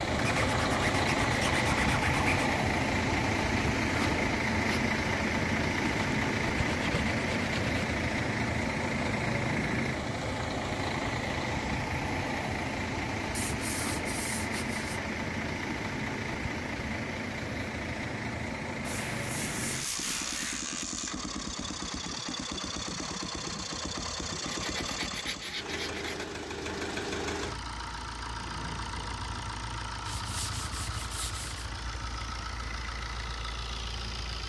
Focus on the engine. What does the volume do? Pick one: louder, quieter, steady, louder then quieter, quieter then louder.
quieter.